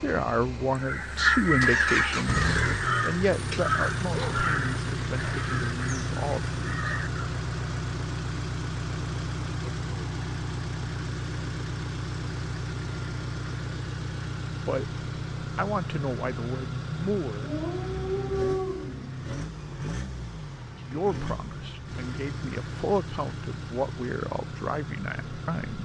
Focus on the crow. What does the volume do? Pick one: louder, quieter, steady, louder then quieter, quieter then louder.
quieter.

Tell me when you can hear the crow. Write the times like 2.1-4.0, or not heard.
0.7-7.2.